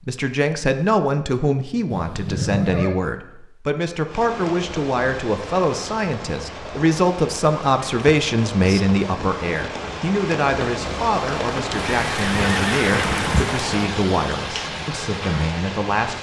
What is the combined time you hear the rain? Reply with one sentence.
The rain can be heard for 12 seconds in total.